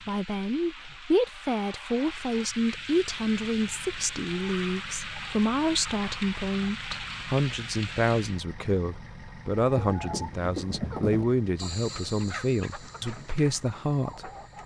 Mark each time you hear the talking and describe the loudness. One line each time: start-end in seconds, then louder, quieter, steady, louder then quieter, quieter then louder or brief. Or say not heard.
0.1-14.3 steady.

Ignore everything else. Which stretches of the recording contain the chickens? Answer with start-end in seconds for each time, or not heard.
9.6-14.6.